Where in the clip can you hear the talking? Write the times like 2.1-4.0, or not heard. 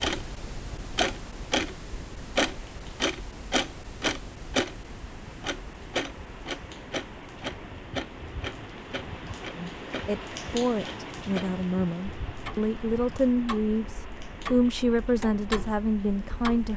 9.6-16.7.